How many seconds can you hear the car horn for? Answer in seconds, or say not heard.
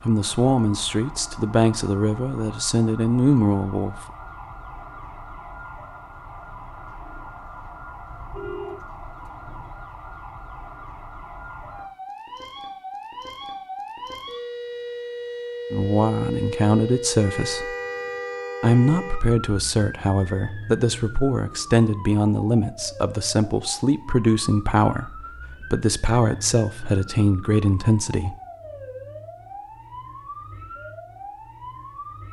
2 s.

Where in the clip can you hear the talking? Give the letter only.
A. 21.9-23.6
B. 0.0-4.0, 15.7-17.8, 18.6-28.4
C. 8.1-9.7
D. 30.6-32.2
B.